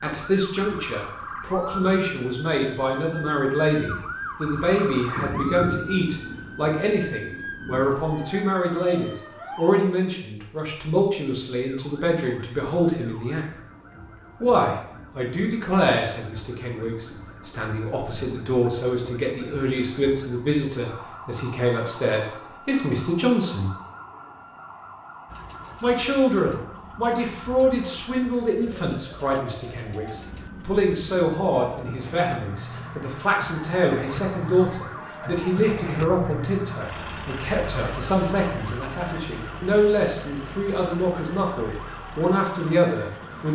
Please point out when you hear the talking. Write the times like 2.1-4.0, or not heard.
0.0-13.4, 14.4-23.7, 25.8-43.5.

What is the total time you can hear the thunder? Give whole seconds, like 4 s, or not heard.
3 s.